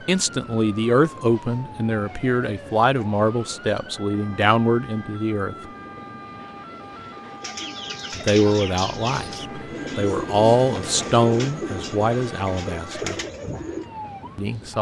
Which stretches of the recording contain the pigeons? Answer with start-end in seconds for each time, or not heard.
7.4-13.8.